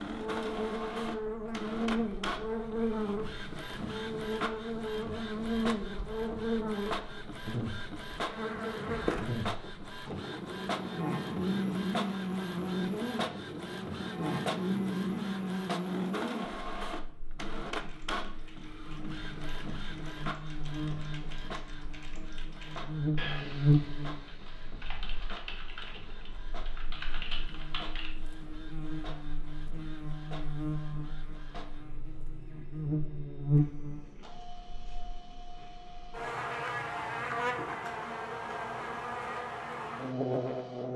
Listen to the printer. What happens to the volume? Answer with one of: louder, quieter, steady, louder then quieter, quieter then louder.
quieter.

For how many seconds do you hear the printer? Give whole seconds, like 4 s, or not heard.
41 s.